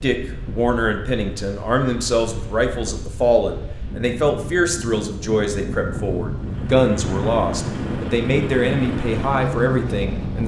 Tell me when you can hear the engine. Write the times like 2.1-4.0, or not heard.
6.3-10.4.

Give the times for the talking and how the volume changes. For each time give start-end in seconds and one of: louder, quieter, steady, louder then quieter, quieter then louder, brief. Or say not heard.
0.0-10.4 steady.